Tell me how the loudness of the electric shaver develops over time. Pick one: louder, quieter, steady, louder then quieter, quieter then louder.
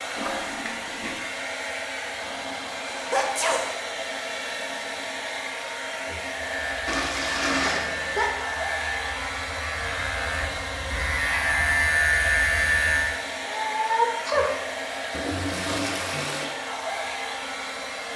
louder.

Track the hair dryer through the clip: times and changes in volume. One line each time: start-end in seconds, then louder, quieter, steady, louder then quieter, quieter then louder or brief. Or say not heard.
0.0-18.1 steady.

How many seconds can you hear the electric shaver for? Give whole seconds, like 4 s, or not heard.
7 s.